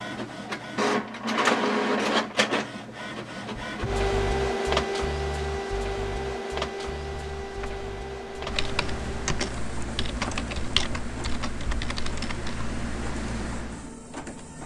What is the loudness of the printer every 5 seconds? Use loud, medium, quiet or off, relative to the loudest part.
loud, medium, quiet.